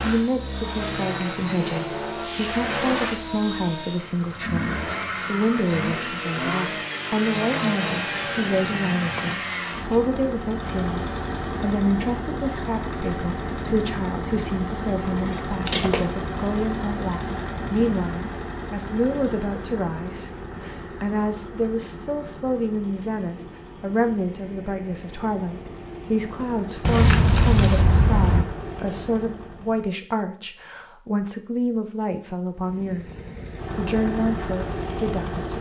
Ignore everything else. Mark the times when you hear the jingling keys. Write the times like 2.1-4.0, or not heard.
7.3-9.3, 15.2-16.1, 26.8-28.4.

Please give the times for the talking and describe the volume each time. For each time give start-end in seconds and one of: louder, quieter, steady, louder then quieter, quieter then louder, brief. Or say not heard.
0.0-33.0 steady
33.6-35.5 brief.